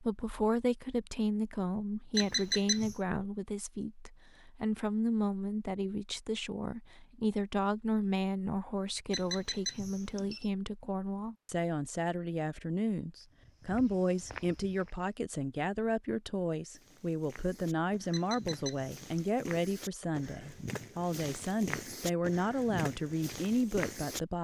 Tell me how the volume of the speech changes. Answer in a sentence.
The volume of the speech stays about the same.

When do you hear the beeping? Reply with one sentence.
The beeping can be heard from 2.1 to 3.0 s, from 9.1 to 10.5 s and from 18.1 to 19.1 s.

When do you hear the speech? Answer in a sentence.
You can hear the speech from 0.0 to 24.3 s.